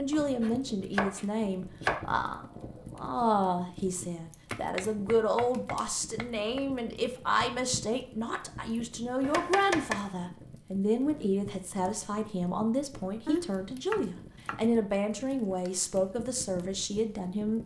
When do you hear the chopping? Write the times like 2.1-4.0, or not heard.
0.1-2.0, 4.5-6.6, 9.2-10.1, 13.2-14.7.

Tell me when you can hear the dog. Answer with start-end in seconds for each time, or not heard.
not heard.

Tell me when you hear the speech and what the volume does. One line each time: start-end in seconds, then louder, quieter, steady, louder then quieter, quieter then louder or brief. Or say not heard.
0.0-17.6 steady.